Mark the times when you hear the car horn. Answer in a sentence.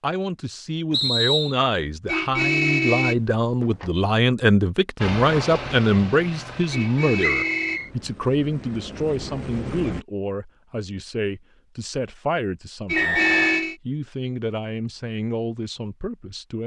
The car horn can be heard from 2.0 to 3.9 s, from 6.7 to 7.8 s and from 12.8 to 13.8 s.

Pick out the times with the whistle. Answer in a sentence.
The whistle can be heard from 0.9 to 1.6 s, from 7.2 to 7.9 s and from 12.9 to 13.7 s.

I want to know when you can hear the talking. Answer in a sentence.
The talking can be heard from 0.0 to 16.6 s.